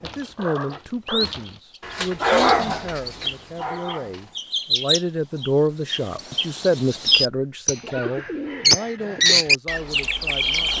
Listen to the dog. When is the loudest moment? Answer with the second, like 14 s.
2 s.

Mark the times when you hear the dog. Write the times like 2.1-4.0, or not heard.
0.0-4.3.